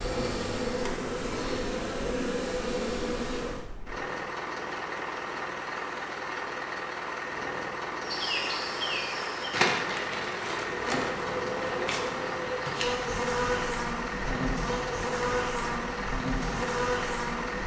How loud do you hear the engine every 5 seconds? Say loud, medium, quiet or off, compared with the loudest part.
medium, loud, loud, loud.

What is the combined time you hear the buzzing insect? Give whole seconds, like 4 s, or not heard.
13 s.